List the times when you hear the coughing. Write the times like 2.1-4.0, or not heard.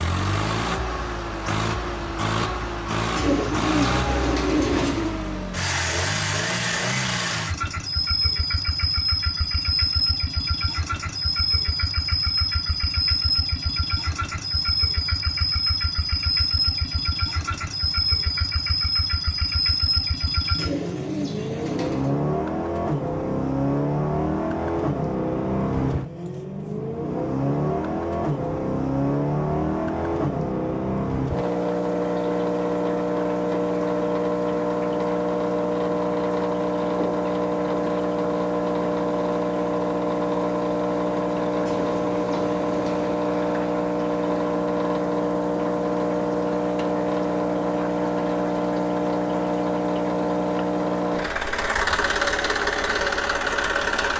not heard.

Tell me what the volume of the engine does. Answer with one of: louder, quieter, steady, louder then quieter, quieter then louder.
steady.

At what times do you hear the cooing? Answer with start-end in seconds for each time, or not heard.
3.1-5.2, 20.6-22.1, 41.6-43.1.